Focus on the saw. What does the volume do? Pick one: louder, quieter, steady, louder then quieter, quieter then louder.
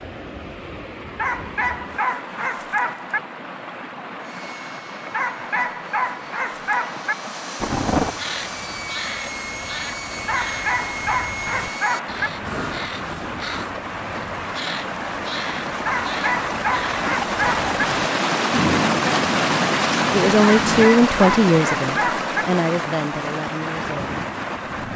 louder.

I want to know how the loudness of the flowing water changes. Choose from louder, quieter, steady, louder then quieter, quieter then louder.
louder.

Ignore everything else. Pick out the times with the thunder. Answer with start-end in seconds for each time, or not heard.
7.6-8.2, 17.9-20.9.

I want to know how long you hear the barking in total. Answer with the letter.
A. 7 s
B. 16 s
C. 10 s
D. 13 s
C.